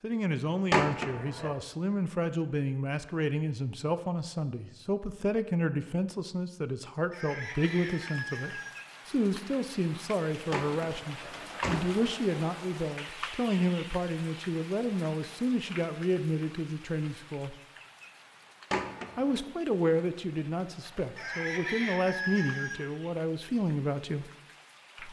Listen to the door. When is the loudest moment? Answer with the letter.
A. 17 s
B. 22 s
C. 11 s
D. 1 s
D.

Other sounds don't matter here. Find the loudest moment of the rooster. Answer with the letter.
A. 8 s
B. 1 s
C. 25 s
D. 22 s
D.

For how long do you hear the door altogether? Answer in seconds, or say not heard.
3 s.